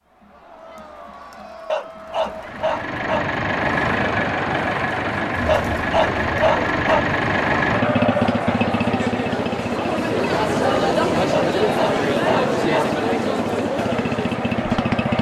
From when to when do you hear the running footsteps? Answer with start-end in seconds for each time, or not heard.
not heard.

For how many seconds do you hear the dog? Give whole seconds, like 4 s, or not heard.
5 s.